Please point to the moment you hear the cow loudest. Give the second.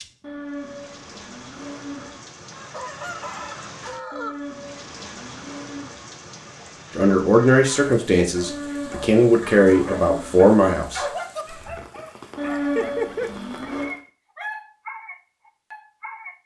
13 s.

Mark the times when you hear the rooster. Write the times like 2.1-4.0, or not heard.
2.5-4.5.